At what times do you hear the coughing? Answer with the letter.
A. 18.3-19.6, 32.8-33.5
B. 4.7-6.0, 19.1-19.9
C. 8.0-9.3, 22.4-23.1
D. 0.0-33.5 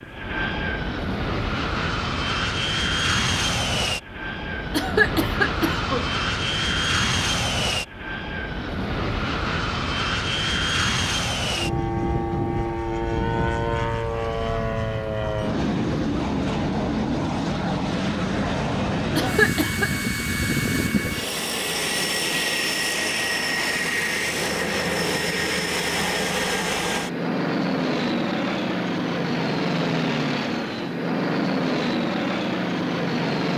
B.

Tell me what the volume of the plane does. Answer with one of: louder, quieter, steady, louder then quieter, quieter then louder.
steady.